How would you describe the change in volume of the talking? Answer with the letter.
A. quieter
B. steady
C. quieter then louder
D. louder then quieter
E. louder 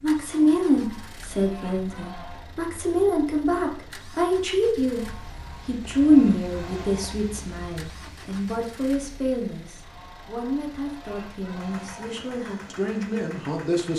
A.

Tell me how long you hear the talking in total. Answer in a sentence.
You can hear the talking for 14 seconds altogether.